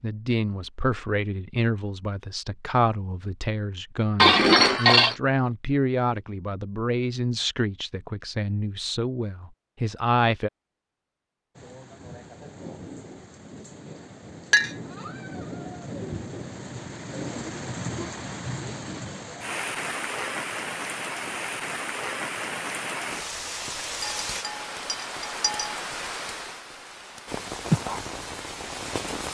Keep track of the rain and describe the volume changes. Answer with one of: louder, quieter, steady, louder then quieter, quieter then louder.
louder.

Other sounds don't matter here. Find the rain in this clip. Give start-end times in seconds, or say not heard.
11.6-29.3.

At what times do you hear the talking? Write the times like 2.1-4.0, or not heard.
0.0-10.5.